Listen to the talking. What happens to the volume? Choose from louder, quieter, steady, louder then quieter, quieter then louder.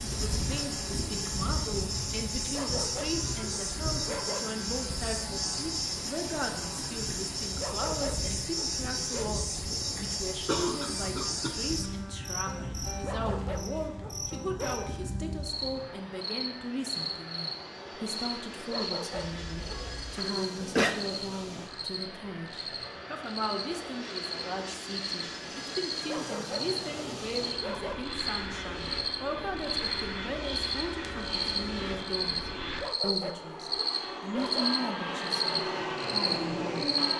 steady.